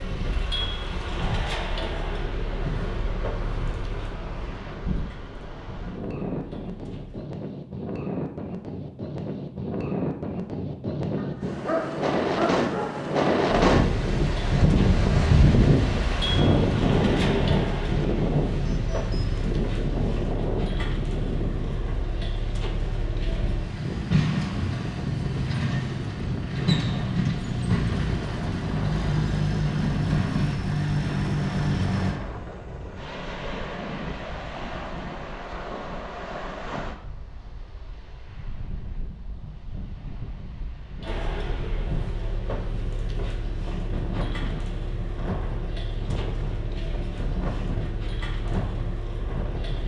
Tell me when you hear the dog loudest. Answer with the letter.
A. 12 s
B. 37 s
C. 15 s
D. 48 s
A.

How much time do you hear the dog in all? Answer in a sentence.
You can hear the dog for 2 seconds altogether.